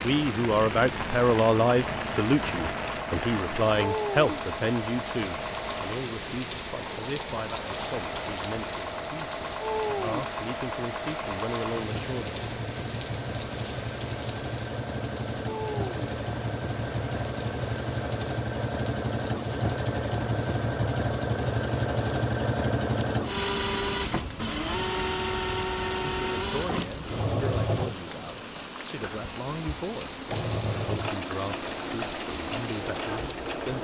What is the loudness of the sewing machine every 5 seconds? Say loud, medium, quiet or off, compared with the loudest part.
medium, medium, medium, loud, loud, loud, medium.